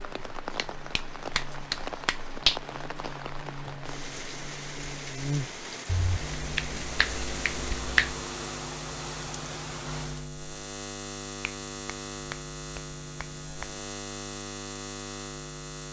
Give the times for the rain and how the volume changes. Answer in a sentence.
The rain can be heard from 0.0 to 10.3 s, at a steady volume.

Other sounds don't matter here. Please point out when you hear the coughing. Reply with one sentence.
The coughing can't be heard in this clip.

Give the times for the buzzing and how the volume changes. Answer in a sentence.
The buzzing can be heard from 0.0 to 15.8 s, getting louder.